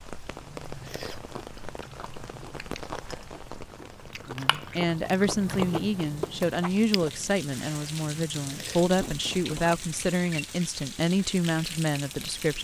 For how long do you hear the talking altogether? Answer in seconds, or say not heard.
8 s.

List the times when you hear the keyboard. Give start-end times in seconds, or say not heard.
not heard.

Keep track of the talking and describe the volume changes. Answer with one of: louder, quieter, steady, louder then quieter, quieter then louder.
steady.